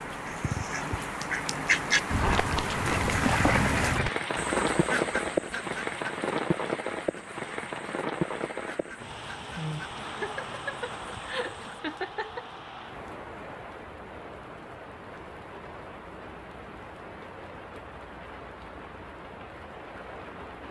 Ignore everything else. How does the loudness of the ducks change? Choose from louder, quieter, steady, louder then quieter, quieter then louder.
quieter.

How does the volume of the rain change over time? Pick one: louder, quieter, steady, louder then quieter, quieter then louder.
quieter.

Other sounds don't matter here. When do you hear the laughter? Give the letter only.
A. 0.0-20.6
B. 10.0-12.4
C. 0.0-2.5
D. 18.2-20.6
B.